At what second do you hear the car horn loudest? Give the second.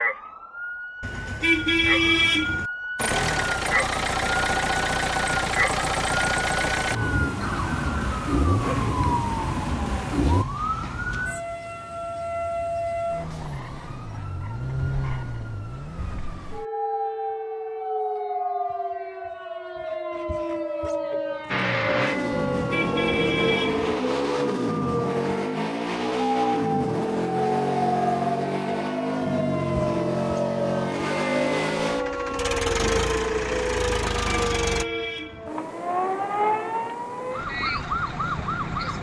2 s.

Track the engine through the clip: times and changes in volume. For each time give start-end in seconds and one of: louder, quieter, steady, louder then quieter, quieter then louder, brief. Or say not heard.
3.0-10.4 steady
21.4-34.9 steady.